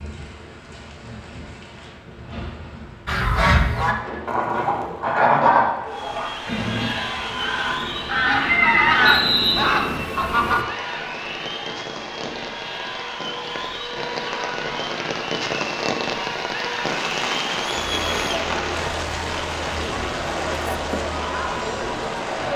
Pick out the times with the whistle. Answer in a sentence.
The whistle can be heard from 9.0 to 9.7 s.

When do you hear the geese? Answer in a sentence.
You can hear the geese from 3.0 to 10.6 s.